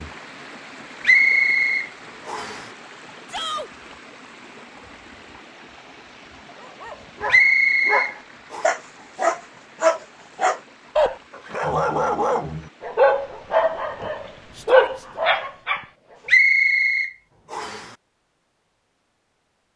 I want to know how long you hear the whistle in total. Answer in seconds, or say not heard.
5 s.